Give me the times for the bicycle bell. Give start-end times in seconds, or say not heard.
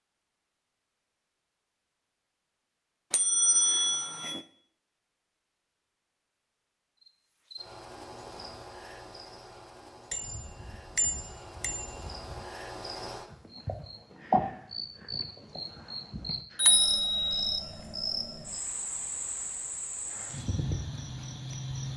3.1-4.4, 10.1-12.4, 16.6-17.6.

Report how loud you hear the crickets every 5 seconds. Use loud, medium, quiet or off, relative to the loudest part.
off, medium, loud, loud, loud.